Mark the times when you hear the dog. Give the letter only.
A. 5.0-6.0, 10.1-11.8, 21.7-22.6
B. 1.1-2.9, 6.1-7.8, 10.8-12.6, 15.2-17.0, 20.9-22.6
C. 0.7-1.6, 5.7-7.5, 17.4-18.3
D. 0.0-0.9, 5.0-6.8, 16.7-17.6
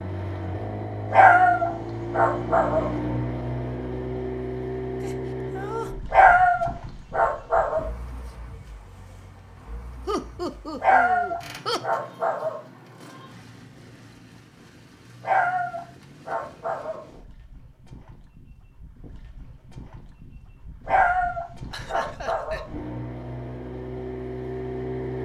B.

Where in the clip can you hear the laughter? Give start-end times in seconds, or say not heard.
5.0-6.0, 10.1-11.8, 21.7-22.6.